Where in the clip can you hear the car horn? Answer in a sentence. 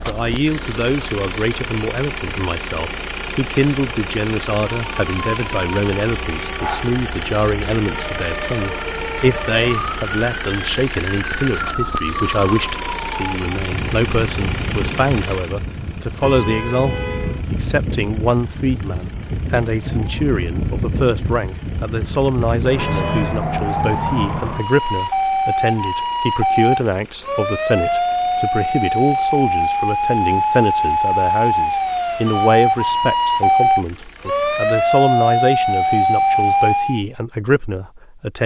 The car horn can be heard from 16.1 to 17.4 s and from 22.8 to 23.4 s.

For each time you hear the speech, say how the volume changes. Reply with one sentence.
The speech can be heard from 0.0 to 38.4 s, at a steady volume.